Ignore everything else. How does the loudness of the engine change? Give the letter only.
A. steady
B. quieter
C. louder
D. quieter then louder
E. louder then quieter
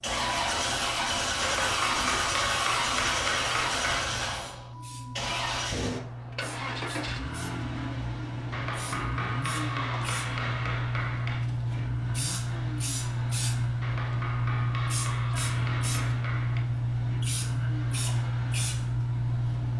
B.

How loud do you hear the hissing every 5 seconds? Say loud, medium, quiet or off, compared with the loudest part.
quiet, medium, loud, loud.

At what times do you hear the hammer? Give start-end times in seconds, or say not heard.
1.4-4.1, 8.5-11.4, 13.8-16.6.